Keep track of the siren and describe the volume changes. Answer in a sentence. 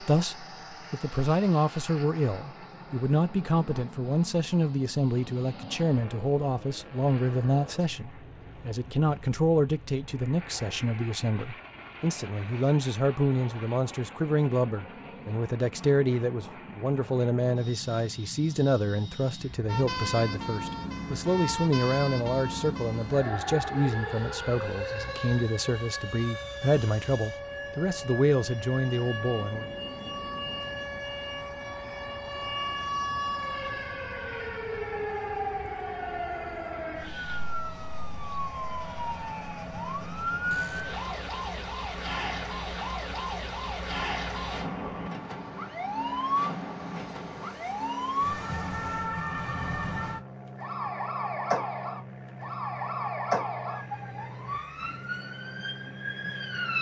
The volume of the siren stays about the same.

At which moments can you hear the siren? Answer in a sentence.
You can hear the siren from 19.6 to 56.7 s.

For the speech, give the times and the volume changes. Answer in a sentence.
The speech can be heard from 0.0 to 29.7 s, at a steady volume.